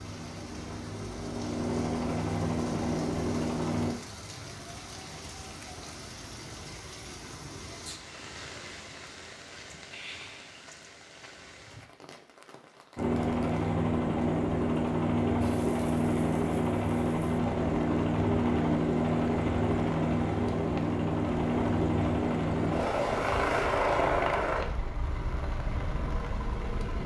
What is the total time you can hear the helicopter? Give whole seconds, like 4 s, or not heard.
18 s.